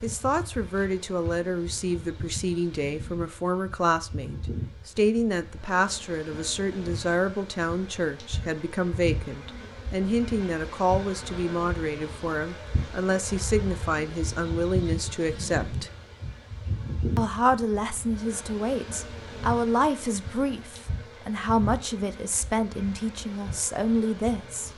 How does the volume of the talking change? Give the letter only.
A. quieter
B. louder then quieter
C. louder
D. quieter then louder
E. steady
E.